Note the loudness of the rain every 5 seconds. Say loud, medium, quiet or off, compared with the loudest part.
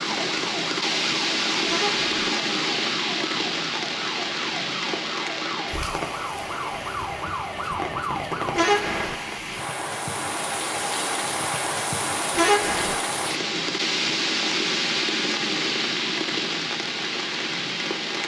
loud, medium, loud, loud.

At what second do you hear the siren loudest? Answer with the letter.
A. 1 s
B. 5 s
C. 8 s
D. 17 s
C.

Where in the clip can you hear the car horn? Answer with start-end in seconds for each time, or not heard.
1.6-2.2, 8.5-9.2, 12.3-12.9.